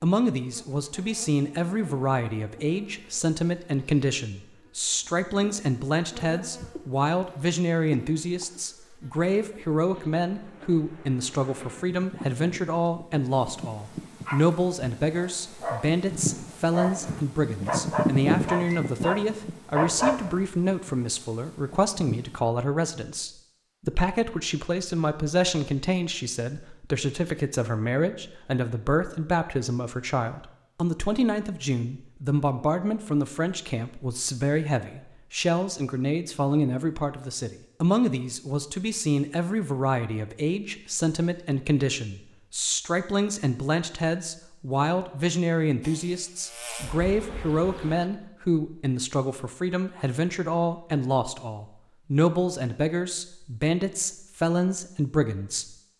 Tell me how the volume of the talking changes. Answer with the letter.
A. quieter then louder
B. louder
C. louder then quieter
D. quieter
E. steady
E.